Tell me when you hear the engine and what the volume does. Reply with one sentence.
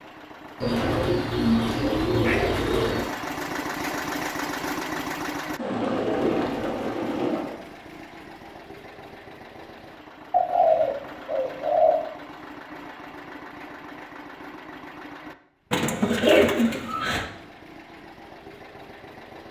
The engine can be heard from 0.0 to 19.4 s, getting quieter.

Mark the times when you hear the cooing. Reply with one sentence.
You can hear the cooing from 0.6 to 3.1 s, from 5.5 to 7.5 s, from 10.3 to 11.9 s and from 15.7 to 17.2 s.